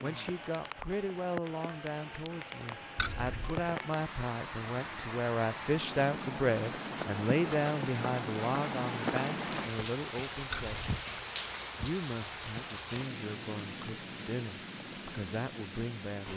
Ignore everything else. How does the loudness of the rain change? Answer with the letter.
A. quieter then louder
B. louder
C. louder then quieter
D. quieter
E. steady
C.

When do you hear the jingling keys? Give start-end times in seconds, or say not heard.
3.0-3.6, 10.5-11.0.